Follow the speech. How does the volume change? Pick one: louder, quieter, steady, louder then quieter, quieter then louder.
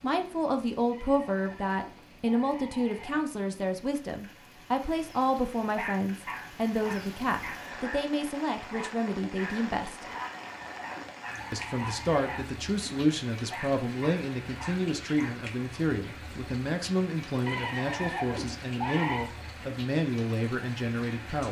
steady.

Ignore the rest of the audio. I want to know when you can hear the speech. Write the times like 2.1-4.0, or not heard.
0.0-10.1, 11.5-21.4.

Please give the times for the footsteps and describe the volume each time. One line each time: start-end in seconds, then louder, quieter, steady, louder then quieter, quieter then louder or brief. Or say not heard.
not heard.